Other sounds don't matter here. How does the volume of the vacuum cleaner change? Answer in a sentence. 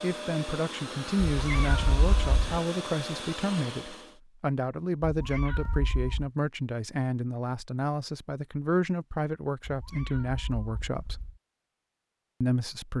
The loudness of the vacuum cleaner stays about the same.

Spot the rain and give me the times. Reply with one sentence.
You can't hear the rain here.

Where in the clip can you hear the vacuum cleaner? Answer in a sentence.
The vacuum cleaner can be heard from 0.0 to 4.2 s.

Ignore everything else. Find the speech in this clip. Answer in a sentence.
The speech can be heard from 0.0 to 11.2 s and from 12.4 to 12.9 s.